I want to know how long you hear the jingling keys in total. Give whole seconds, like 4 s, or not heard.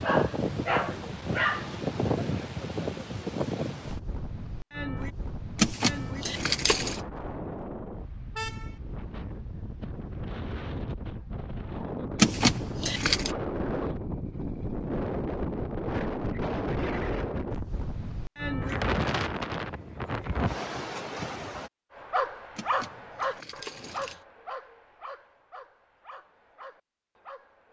4 s.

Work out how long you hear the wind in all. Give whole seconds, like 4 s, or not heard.
22 s.